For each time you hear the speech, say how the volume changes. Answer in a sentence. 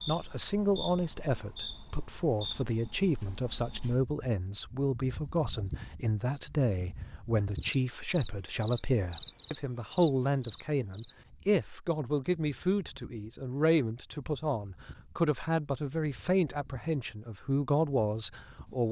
The speech can be heard from 0.1 to 18.8 s, at a steady volume.